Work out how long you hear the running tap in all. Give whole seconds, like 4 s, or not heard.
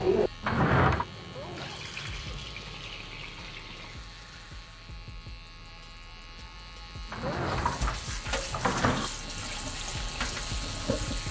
9 s.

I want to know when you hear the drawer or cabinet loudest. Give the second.
1 s.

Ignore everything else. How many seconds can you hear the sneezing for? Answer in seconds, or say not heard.
2 s.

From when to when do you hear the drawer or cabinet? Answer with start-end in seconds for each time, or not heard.
0.4-1.1, 7.1-9.1.